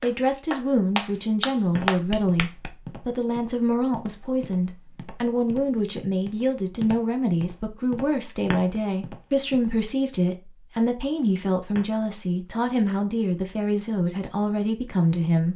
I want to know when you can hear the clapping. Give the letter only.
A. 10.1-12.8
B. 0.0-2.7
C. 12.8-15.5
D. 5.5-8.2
B.